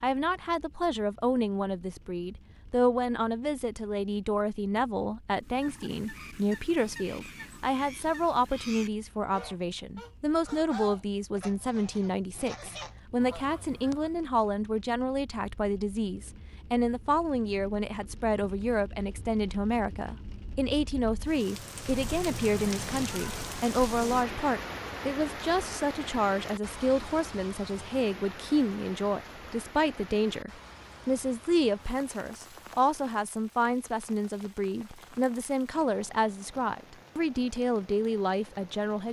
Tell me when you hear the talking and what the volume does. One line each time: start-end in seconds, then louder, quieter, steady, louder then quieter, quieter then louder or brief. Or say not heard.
0.0-39.0 steady.